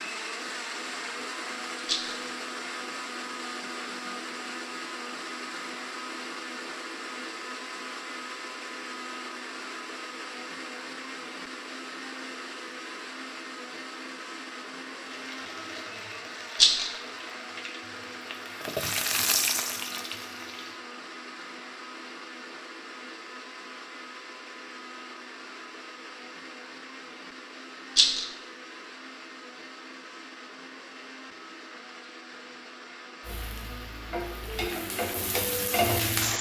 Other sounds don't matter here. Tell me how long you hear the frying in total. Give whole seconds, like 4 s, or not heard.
9 s.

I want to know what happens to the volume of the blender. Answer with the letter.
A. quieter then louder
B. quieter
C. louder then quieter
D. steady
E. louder
B.